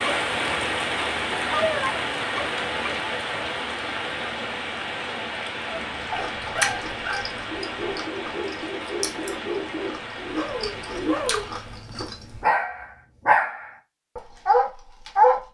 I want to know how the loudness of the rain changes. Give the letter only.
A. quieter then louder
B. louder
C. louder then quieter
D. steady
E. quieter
E.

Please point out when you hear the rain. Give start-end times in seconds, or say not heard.
0.0-11.9.